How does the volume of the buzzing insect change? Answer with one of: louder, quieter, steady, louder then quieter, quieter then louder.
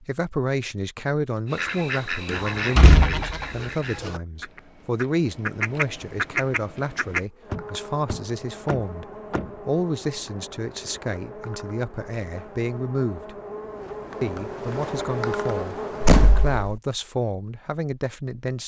louder.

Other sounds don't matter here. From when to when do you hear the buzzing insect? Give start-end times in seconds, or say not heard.
7.2-16.7.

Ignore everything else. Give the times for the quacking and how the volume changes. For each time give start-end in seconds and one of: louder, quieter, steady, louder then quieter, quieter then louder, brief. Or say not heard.
1.4-7.2 quieter then louder.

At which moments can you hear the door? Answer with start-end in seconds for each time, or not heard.
2.3-4.2, 7.5-9.5, 16.0-16.5.